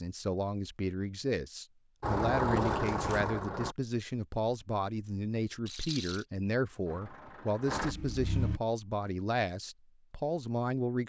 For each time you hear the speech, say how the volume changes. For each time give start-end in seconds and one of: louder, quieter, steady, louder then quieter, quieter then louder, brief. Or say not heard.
0.0-11.0 steady.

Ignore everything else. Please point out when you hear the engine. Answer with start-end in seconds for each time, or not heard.
2.0-3.8, 6.8-8.6.